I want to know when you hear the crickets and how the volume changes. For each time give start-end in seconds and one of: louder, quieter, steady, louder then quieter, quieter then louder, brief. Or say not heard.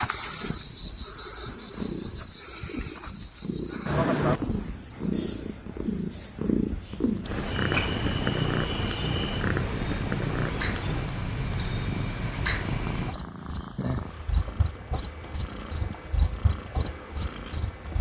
0.0-17.9 quieter then louder.